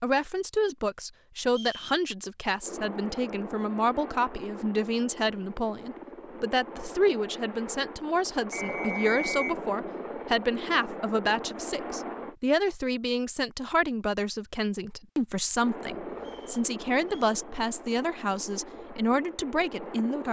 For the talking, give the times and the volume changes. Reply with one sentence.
The talking can be heard from 0.0 to 20.2 s, at a steady volume.